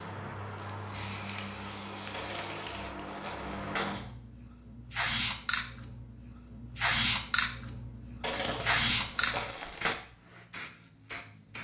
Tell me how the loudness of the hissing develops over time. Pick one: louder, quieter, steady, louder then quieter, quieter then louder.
louder.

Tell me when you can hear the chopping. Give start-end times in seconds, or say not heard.
not heard.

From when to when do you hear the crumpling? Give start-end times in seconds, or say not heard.
2.1-4.1, 8.2-10.0.